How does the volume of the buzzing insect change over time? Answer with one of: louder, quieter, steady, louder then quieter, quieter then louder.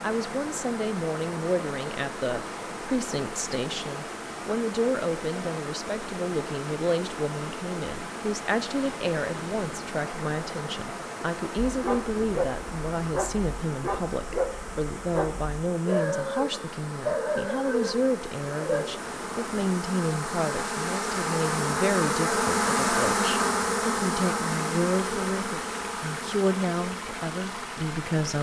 louder.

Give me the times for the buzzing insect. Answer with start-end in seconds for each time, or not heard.
0.0-28.3.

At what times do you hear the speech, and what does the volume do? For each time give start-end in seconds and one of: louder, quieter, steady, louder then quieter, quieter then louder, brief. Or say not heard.
0.0-28.3 steady.